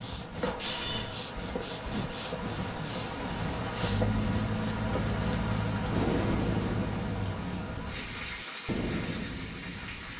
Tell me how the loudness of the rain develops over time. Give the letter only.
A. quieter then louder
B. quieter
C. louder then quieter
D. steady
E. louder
C.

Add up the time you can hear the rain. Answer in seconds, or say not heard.
10 s.